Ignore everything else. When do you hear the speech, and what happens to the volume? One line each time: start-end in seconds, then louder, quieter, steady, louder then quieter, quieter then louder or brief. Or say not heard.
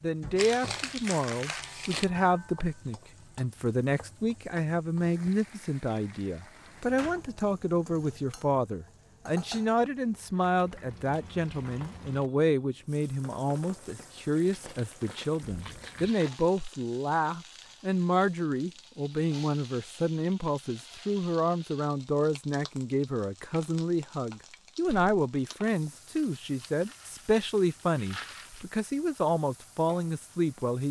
0.0-30.8 steady.